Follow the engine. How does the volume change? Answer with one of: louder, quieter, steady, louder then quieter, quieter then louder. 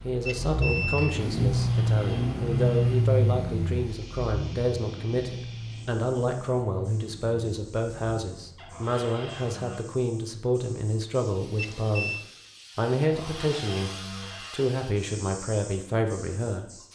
quieter.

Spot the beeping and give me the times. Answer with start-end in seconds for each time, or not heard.
0.2-1.2, 11.6-12.2.